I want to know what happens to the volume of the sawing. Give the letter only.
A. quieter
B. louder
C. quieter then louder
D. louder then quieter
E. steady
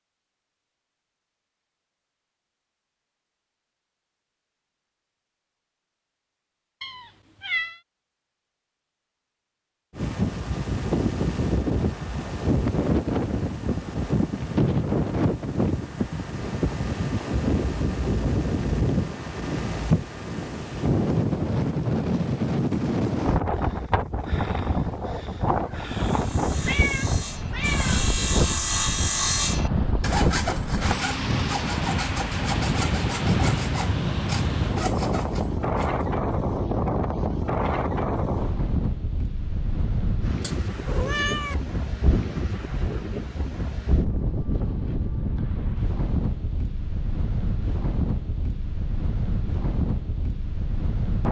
D.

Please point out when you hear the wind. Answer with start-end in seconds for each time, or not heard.
9.9-51.2.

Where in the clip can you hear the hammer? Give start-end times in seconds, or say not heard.
not heard.